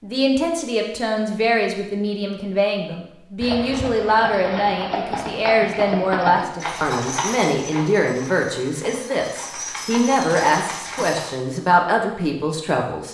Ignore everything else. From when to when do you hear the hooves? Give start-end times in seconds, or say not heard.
3.4-11.3.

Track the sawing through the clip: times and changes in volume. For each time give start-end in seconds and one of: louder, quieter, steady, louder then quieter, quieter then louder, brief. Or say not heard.
not heard.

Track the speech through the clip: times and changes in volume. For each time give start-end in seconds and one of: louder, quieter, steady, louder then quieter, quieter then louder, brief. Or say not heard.
0.0-13.1 steady.